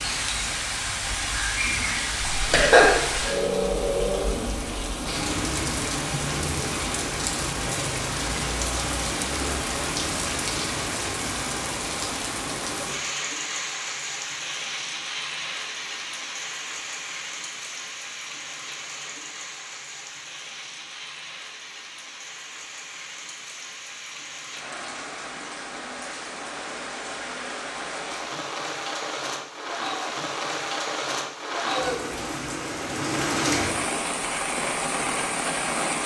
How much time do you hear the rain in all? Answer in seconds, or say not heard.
36 s.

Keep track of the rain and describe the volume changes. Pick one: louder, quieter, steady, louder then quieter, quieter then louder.
quieter then louder.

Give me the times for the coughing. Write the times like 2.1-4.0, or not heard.
2.3-3.2.